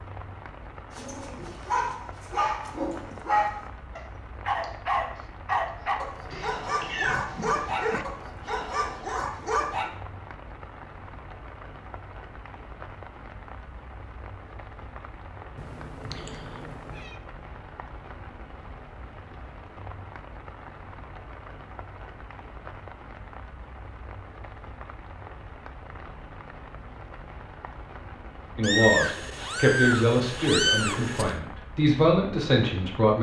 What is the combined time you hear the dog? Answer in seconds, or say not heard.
9 s.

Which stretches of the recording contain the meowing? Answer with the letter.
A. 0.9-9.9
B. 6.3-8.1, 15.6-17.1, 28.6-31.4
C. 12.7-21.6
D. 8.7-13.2
B.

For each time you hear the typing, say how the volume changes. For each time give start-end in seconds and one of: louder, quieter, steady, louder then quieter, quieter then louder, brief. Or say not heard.
not heard.